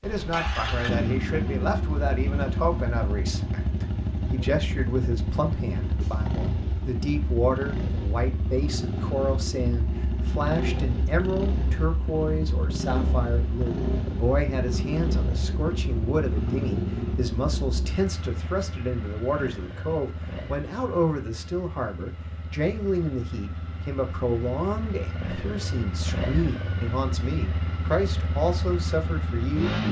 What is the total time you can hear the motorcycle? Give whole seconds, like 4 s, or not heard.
30 s.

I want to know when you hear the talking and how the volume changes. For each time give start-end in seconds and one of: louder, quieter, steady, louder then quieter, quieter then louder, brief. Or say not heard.
0.0-29.8 steady.